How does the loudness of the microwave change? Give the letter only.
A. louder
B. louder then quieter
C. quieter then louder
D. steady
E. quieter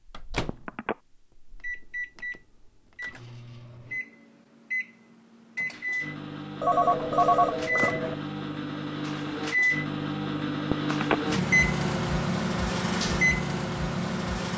A.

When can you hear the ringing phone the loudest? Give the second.
7 s.